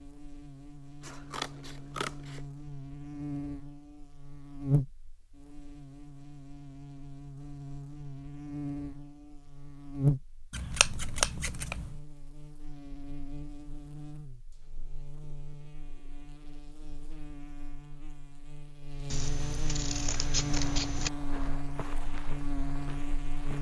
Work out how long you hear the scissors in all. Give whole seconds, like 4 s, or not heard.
5 s.